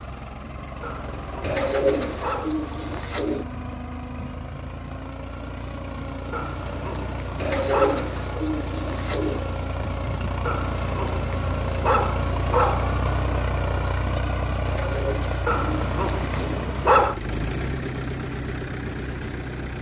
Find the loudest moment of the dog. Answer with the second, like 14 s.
17 s.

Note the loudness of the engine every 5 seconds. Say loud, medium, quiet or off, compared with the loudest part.
medium, medium, loud, loud.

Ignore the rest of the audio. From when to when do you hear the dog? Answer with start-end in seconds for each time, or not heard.
0.8-2.5, 6.3-8.2, 10.4-12.9, 15.4-17.2.